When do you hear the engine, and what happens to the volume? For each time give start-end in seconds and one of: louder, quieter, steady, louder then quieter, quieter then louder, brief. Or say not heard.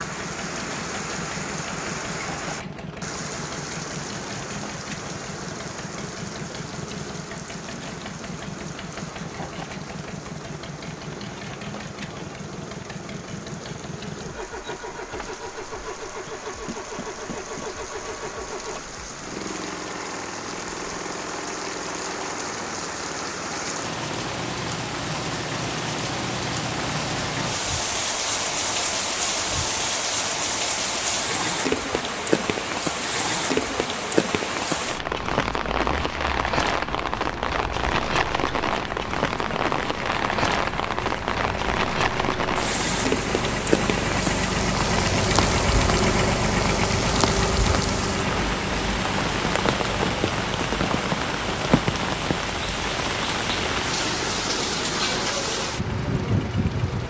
0.0-57.0 louder.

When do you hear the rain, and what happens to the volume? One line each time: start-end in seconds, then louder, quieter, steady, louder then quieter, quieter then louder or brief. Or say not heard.
0.0-57.0 louder.